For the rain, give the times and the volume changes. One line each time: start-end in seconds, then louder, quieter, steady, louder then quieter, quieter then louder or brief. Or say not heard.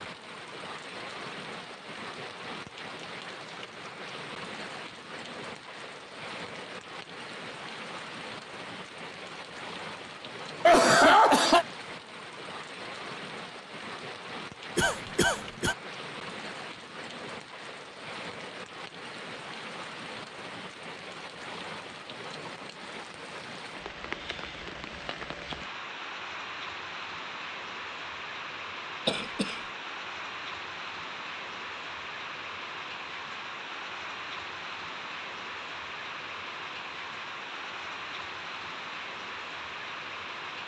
0.0-40.6 steady.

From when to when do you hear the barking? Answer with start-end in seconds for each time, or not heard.
not heard.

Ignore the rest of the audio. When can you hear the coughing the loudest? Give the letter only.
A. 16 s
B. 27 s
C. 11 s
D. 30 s
C.